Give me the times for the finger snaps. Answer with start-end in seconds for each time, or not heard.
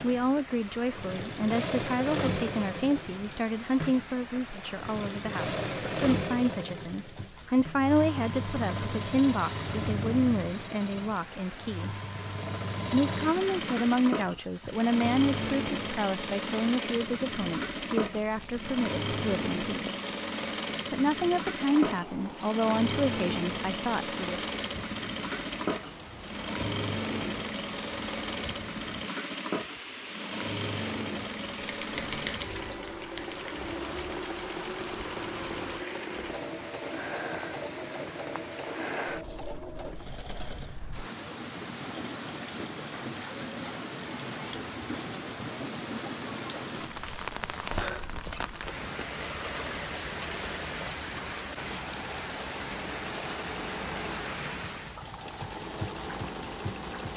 31.6-33.6.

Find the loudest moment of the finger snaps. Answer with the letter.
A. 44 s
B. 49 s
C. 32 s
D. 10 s
C.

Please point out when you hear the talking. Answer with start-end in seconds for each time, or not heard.
0.0-11.9, 12.9-19.9, 20.9-24.4.